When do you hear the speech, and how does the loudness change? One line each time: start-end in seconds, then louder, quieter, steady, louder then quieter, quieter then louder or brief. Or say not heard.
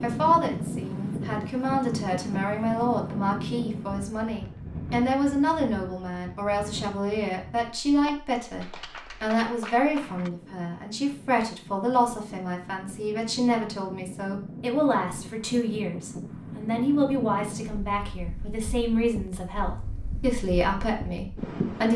0.0-21.9 steady.